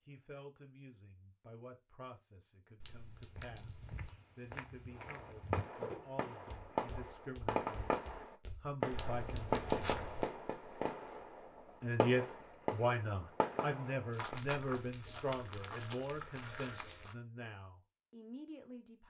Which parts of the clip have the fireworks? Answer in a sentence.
The fireworks can be heard from 5.0 to 14.3 s.